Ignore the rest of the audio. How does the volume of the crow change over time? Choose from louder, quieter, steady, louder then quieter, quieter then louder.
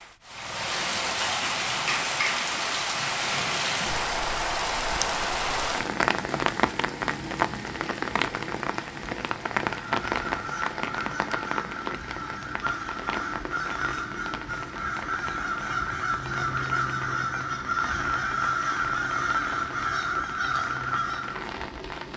louder.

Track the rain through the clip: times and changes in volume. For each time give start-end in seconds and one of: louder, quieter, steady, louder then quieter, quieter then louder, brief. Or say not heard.
0.0-22.1 quieter.